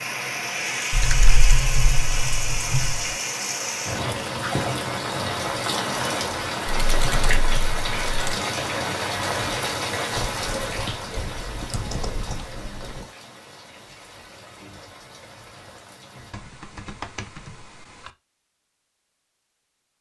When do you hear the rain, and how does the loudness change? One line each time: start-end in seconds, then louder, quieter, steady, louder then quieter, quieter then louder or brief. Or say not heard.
0.0-16.4 quieter.